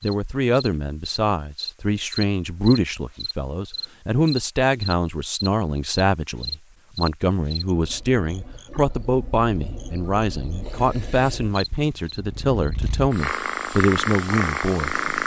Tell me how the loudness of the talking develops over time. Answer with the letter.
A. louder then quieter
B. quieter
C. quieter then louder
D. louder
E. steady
E.